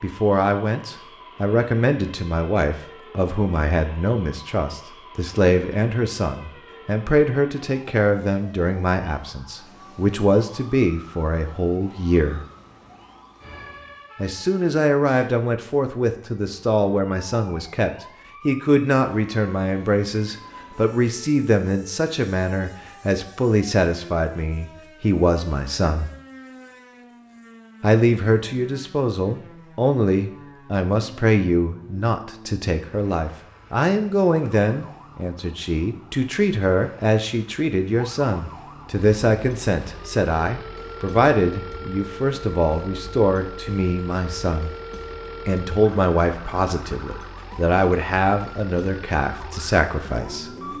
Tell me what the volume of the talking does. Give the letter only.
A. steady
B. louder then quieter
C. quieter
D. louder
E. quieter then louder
A.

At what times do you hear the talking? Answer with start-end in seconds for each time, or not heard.
0.0-12.4, 14.2-26.1, 27.8-44.7, 45.5-50.5.